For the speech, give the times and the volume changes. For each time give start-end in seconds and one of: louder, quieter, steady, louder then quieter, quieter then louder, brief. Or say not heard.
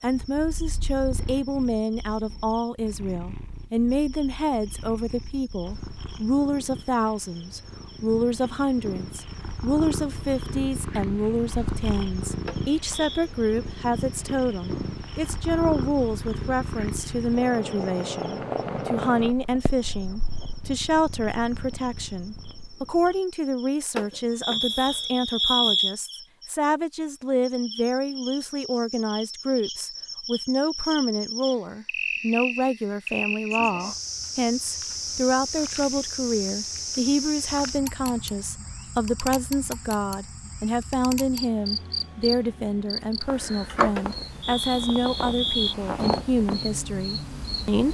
0.0-47.9 steady.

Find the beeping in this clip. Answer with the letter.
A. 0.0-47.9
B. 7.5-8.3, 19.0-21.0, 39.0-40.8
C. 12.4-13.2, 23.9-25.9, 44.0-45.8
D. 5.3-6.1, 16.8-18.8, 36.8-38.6
C.